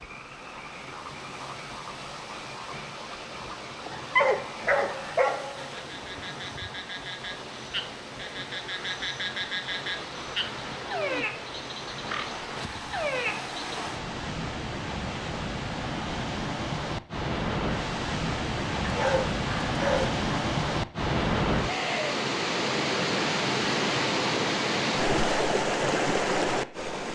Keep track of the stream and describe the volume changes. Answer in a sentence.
The volume of the stream goes up.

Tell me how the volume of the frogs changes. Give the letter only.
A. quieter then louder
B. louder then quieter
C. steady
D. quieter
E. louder
E.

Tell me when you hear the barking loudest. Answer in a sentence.
The loudest moment of the barking is at 4 seconds.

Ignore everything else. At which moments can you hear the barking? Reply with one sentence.
You can hear the barking from 3.9 to 5.8 s and from 18.8 to 20.2 s.